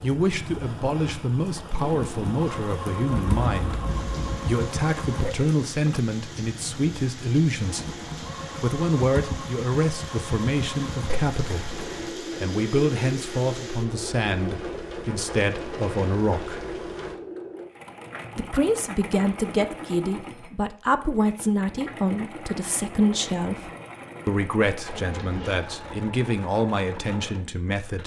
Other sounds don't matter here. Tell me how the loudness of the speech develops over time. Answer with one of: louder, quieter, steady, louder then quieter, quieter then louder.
steady.